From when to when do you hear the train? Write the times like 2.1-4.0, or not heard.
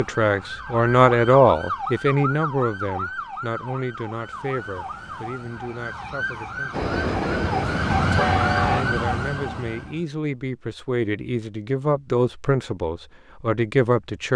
6.7-8.8.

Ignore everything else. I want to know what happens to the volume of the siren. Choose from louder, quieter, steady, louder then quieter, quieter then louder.
quieter then louder.